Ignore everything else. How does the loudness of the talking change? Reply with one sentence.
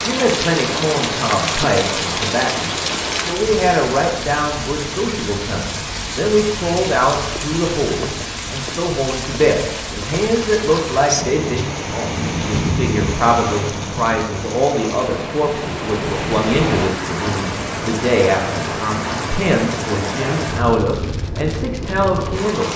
The loudness of the talking stays about the same.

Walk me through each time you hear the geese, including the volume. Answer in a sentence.
The geese can't be heard in this clip.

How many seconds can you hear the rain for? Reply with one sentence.
You can hear the rain for 23 seconds altogether.